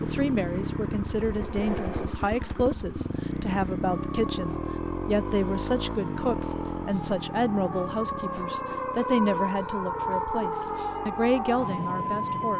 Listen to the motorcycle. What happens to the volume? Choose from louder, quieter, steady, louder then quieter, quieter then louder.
quieter.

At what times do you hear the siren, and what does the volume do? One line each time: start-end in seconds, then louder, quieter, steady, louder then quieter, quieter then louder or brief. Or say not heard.
0.0-12.5 louder.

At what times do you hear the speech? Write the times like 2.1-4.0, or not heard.
0.0-12.5.